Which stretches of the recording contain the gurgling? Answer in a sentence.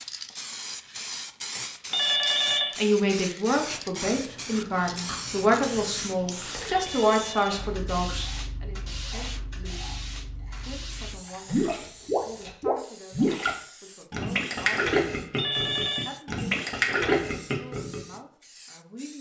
You can hear the gurgling from 11.4 to 18.1 s.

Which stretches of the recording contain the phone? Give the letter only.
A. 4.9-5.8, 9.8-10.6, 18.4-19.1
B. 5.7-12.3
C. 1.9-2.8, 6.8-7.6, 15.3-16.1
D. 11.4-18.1
C.